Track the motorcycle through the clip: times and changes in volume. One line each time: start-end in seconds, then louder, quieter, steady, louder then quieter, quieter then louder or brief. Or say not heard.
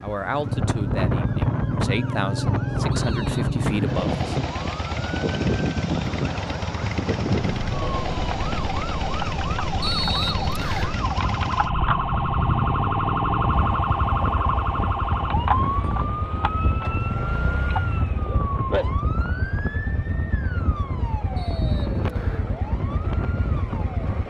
0.2-24.2 quieter.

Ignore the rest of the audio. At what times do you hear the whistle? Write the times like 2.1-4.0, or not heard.
3.0-4.0, 9.8-10.9, 21.4-22.5.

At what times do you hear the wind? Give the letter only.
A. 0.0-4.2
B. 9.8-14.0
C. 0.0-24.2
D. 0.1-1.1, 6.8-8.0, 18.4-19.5
C.